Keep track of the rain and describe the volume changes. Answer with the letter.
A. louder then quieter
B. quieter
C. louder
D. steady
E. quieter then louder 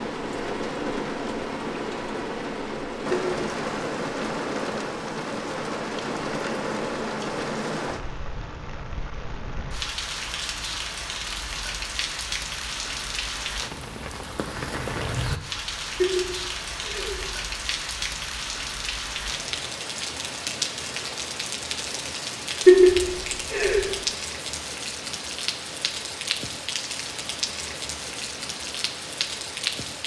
D.